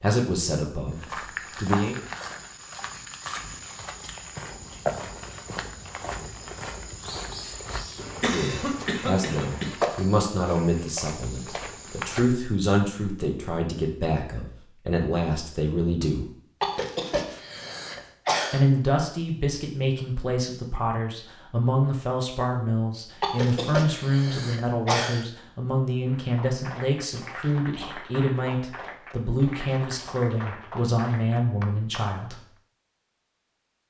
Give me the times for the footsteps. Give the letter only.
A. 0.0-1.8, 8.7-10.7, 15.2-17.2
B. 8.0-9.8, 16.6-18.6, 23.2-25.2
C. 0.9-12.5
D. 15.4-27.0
C.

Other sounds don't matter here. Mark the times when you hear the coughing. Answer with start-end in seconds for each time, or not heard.
8.0-9.8, 16.6-18.6, 23.2-25.2.